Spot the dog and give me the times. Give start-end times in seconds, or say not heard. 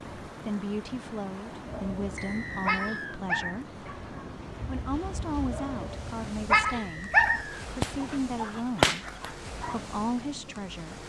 1.6-9.8.